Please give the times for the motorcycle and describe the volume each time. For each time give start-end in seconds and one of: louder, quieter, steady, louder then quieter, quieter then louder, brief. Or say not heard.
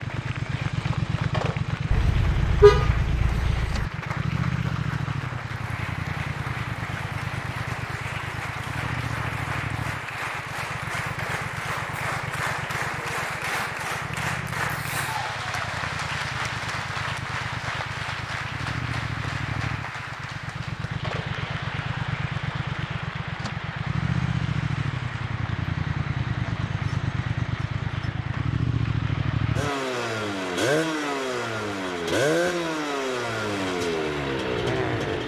0.0-35.2 quieter then louder.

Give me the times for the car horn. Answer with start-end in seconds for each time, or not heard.
1.9-3.9.